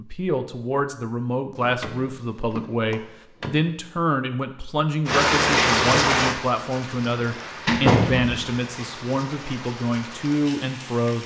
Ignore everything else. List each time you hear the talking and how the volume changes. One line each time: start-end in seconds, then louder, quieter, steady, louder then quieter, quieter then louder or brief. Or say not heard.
0.0-11.2 steady.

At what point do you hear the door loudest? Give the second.
8 s.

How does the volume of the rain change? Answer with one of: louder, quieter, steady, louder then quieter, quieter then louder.
quieter.